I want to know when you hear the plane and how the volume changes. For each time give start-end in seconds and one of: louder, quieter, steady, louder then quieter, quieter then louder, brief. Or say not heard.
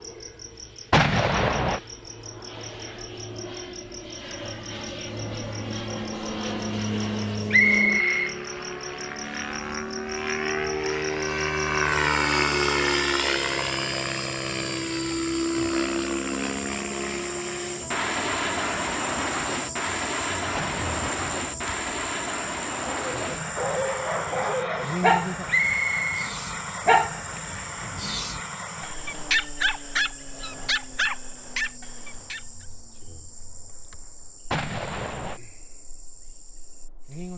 0.0-37.3 louder then quieter.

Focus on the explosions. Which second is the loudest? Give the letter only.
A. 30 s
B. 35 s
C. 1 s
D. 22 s
C.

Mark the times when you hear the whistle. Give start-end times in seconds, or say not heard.
7.5-8.3, 25.4-26.3.